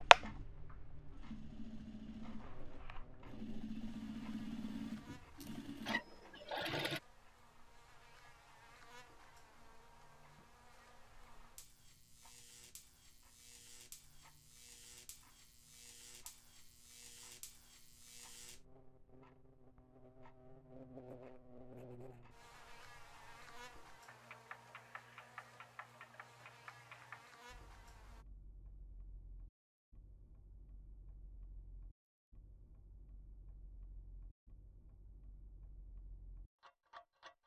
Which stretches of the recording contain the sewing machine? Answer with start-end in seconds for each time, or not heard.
0.0-7.0.